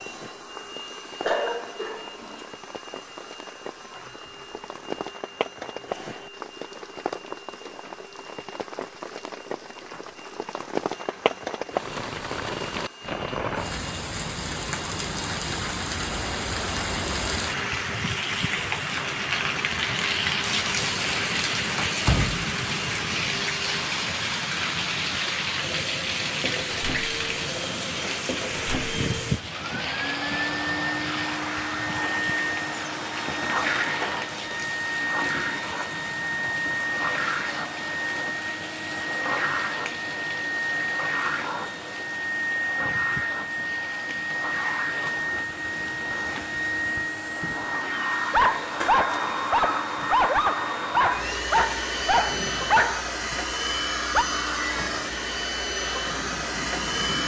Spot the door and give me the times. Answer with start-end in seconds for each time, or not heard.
21.9-22.4.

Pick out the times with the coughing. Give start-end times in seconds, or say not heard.
1.2-2.5.